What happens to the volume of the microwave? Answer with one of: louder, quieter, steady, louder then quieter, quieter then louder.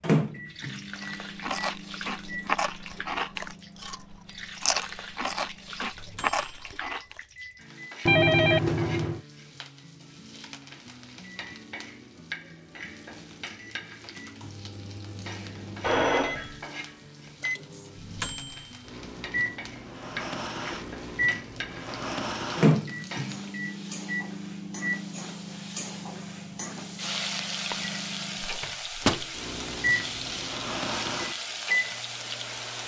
louder.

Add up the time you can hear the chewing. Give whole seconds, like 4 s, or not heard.
6 s.